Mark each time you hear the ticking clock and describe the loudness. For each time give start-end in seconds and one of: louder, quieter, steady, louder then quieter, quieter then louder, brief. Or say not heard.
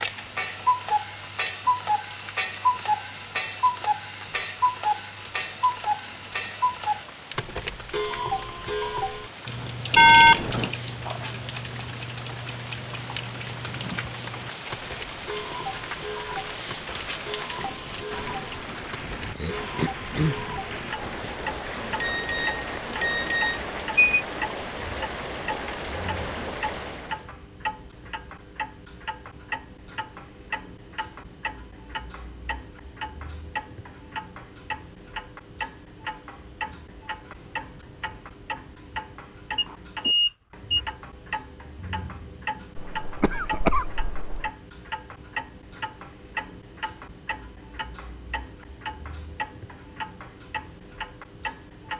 0.0-51.9 quieter.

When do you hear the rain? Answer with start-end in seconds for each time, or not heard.
0.0-27.3.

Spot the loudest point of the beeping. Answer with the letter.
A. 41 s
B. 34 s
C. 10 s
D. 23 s
C.